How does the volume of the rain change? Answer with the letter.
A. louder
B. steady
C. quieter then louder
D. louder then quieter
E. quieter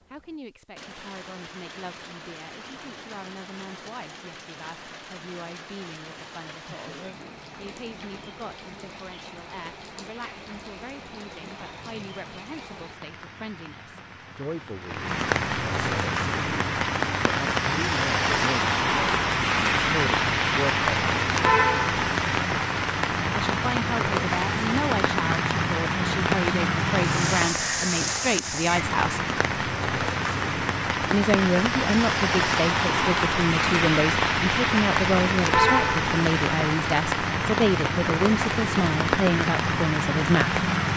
A.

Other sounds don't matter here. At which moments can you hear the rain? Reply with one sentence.
You can hear the rain from 0.0 to 40.9 s.